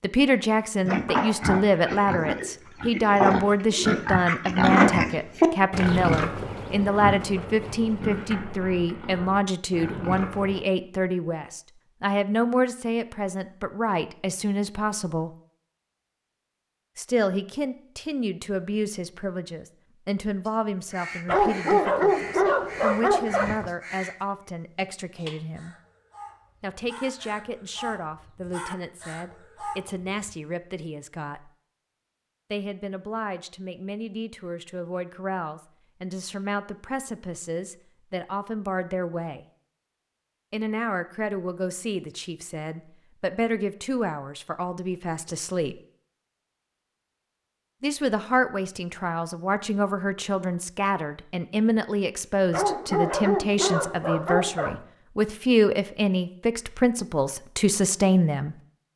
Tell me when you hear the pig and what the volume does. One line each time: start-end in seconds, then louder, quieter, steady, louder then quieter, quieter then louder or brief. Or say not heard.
0.8-10.7 louder then quieter.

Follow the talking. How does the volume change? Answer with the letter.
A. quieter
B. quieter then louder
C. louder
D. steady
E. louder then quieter
B.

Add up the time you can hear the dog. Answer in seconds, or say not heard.
5 s.